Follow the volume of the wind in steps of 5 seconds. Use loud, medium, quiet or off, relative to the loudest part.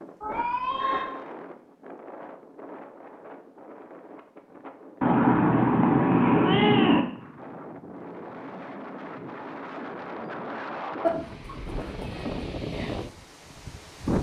medium, medium, loud.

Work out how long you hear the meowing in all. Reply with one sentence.
The meowing can be heard for 4 seconds in total.